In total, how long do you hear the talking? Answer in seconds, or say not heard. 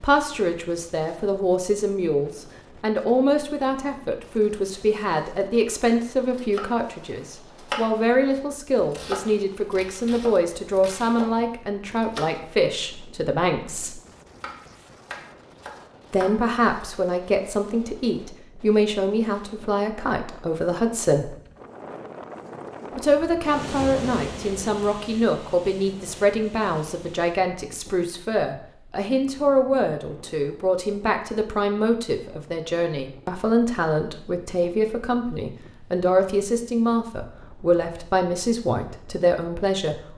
36 s.